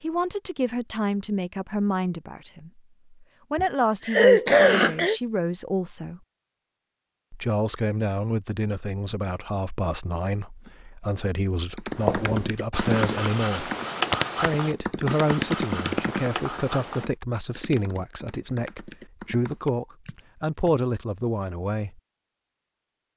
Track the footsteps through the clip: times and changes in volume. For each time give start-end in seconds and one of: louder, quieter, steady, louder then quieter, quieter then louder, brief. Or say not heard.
not heard.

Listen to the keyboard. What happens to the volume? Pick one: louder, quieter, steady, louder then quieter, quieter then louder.
quieter.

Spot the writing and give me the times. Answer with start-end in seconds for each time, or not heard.
11.9-17.1.